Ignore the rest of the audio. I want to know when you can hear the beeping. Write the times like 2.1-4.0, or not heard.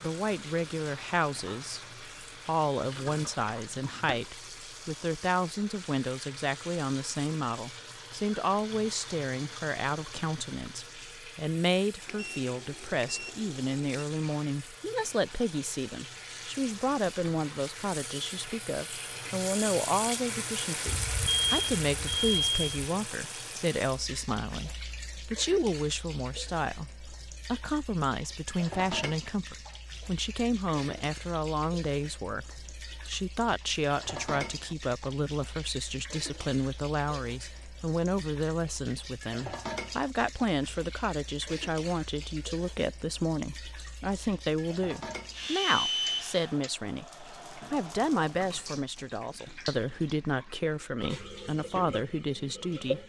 12.1-14.1, 20.9-22.9, 45.1-46.7.